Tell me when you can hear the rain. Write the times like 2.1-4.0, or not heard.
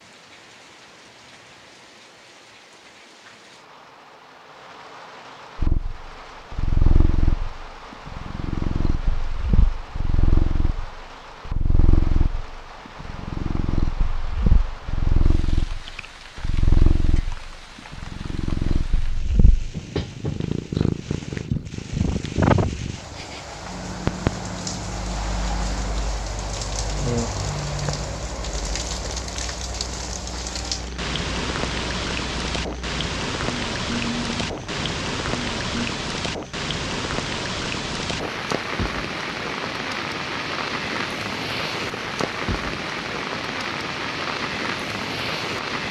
0.0-45.8.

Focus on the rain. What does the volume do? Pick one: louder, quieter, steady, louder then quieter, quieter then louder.
louder.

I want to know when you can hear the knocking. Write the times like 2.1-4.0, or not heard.
not heard.